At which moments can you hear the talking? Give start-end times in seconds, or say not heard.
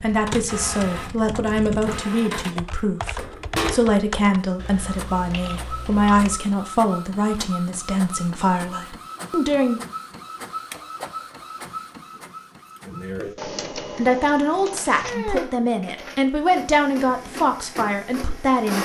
0.0-9.8, 13.9-18.8.